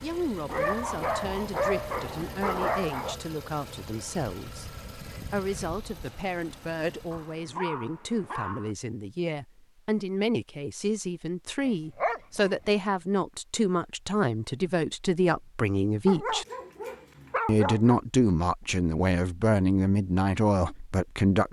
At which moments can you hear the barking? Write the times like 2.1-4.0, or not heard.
0.5-3.1, 7.1-8.8, 11.7-12.7, 16.1-18.0.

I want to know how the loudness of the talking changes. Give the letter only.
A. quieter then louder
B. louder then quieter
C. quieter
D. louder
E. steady
D.